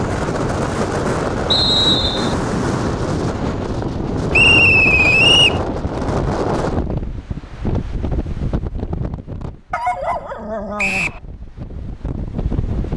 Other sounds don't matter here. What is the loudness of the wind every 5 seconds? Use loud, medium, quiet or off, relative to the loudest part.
loud, loud, medium.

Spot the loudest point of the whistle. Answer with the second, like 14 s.
5 s.